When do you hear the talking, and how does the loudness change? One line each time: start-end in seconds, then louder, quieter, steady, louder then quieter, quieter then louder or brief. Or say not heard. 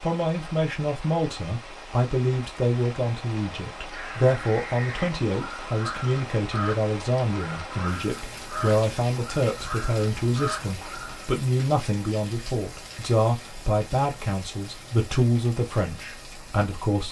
0.0-17.0 steady.